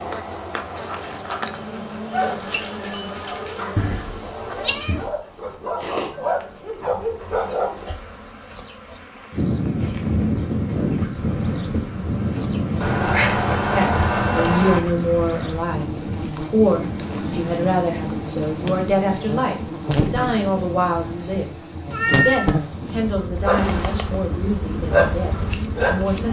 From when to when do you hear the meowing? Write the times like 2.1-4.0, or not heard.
3.8-5.1, 12.8-14.8, 21.9-23.2.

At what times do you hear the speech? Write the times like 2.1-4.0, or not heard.
13.8-26.2.